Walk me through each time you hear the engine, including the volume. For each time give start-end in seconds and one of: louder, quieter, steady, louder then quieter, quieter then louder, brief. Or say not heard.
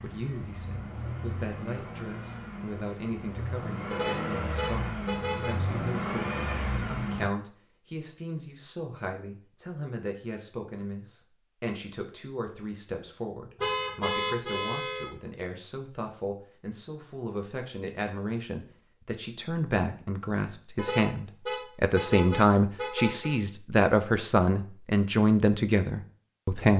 0.0-7.3 louder.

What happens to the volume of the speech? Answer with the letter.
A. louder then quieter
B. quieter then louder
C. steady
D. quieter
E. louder
E.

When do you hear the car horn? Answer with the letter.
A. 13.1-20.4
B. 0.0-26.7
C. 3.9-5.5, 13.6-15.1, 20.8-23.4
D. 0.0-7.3
C.